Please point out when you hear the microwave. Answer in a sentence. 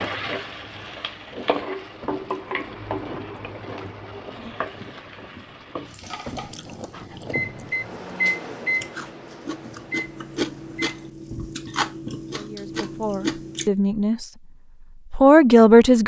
You can hear the microwave from 7.2 to 11.1 s.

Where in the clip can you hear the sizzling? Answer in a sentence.
You can hear the sizzling from 0.0 to 7.2 s.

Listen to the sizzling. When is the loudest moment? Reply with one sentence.
The volume of the sizzling peaks at 2 seconds.